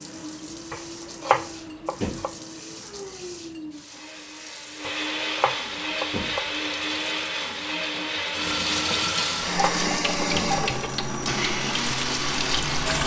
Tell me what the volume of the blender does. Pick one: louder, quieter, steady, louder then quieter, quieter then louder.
louder.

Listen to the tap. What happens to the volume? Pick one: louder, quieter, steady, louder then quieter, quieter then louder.
louder.